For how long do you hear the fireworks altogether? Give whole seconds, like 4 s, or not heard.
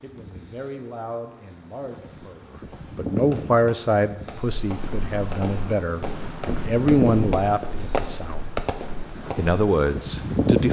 7 s.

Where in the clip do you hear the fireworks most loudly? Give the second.
8 s.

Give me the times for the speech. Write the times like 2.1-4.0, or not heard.
0.0-8.4, 9.2-10.6.